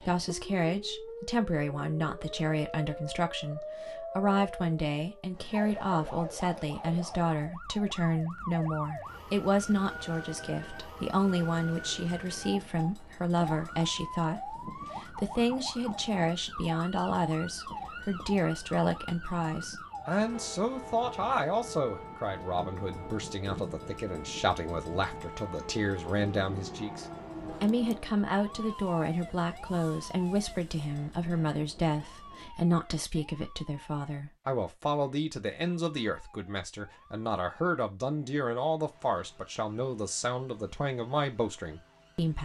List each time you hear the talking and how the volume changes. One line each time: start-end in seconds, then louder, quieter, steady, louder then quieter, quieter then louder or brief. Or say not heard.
0.0-42.3 steady.